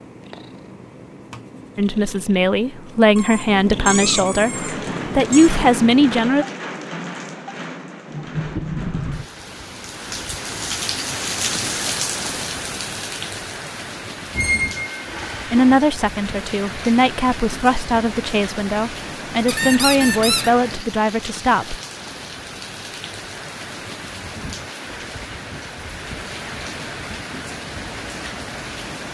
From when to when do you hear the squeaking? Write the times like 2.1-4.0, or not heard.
3.1-5.5, 14.3-15.8, 19.4-20.5.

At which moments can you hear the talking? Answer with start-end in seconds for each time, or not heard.
1.8-4.5, 5.2-6.5, 15.5-21.8.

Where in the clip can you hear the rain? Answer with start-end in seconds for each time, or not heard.
4.3-29.0.